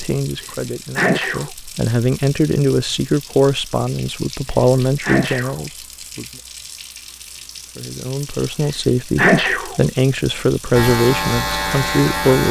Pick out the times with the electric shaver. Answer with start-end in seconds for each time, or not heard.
10.7-12.4.